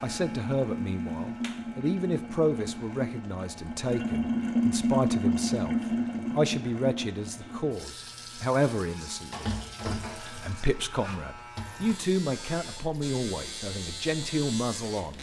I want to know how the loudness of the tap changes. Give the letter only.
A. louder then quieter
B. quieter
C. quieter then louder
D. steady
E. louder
A.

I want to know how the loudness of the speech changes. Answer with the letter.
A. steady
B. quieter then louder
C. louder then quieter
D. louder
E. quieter
A.